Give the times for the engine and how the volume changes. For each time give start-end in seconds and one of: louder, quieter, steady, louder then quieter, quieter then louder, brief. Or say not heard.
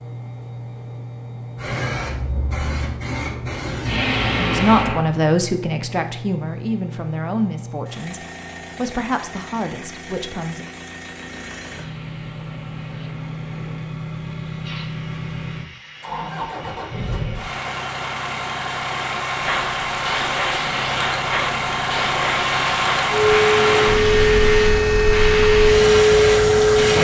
0.0-26.9 louder.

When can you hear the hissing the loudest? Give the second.
26 s.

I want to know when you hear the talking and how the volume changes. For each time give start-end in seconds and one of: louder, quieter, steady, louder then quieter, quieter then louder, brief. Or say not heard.
4.3-10.7 quieter.